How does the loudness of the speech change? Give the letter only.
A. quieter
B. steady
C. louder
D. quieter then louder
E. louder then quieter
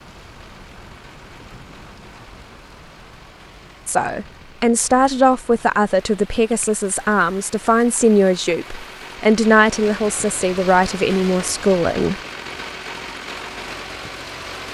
B.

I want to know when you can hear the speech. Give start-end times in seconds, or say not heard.
3.9-12.2.